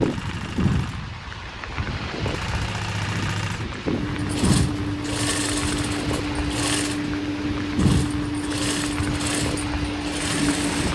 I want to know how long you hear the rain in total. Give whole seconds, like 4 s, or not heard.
11 s.